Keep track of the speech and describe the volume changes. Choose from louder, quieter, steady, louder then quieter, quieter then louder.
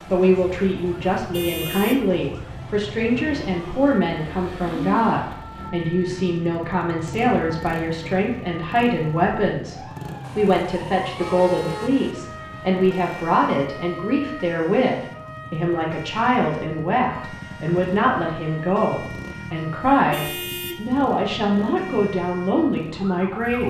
steady.